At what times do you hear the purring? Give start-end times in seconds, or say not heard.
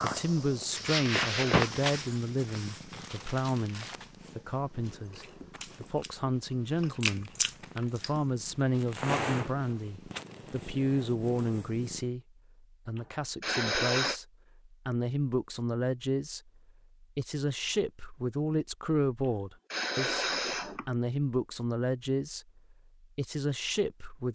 0.0-12.1.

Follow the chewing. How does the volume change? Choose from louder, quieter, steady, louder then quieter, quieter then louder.
quieter then louder.